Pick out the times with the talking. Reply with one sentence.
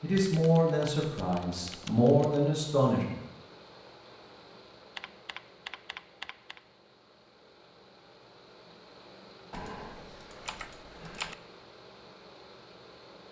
You can hear the talking from 0.0 to 3.2 s.